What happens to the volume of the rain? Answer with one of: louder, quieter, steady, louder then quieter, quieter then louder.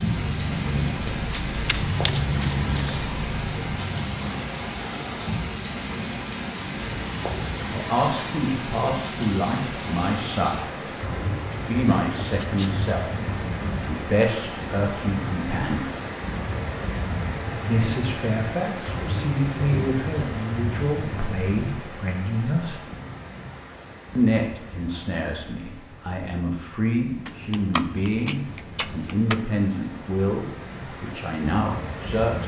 quieter.